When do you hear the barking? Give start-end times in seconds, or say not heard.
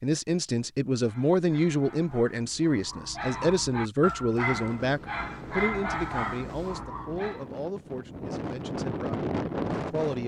1.0-7.5.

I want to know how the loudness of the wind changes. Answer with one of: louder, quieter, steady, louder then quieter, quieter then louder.
louder.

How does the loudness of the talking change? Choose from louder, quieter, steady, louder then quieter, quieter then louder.
quieter.